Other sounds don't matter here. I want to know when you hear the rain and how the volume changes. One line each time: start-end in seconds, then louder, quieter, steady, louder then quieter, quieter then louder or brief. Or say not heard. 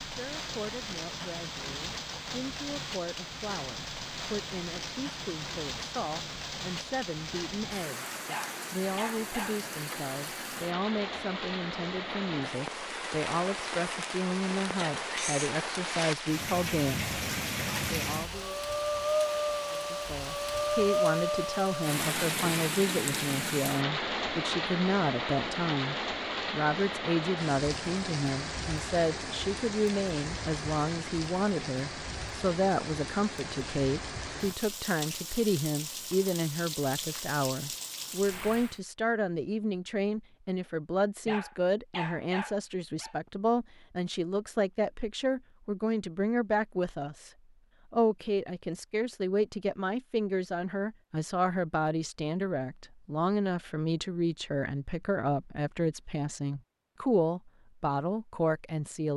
0.0-38.8 louder then quieter.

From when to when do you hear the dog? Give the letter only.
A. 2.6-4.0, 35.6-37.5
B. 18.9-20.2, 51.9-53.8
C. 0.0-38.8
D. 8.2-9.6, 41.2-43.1
D.